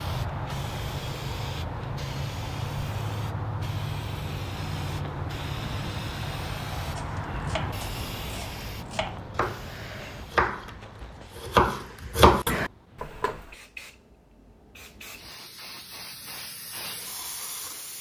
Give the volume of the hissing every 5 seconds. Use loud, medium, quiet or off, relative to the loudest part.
loud, loud, quiet, medium.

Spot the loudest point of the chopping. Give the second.
12 s.